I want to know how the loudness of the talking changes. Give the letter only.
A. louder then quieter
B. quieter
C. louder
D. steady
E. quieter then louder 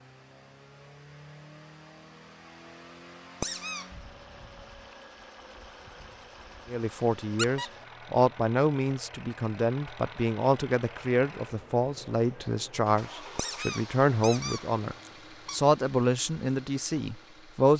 D.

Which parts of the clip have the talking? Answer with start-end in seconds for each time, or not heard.
6.7-17.7.